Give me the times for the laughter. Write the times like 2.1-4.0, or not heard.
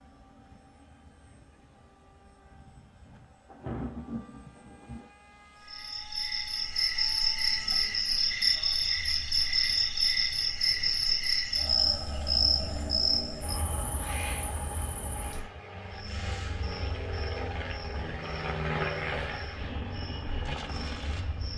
not heard.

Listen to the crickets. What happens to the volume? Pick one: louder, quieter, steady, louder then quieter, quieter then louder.
quieter.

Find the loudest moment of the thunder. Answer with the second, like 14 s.
4 s.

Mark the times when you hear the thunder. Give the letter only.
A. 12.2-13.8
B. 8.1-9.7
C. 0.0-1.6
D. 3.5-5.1
D.